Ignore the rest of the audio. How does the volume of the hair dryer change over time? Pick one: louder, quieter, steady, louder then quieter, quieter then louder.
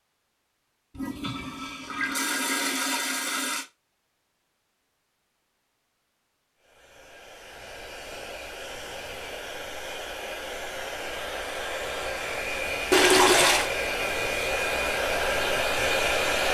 louder.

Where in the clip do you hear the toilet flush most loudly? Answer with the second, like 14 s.
13 s.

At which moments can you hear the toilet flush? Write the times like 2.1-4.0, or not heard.
0.9-3.6, 12.9-13.7.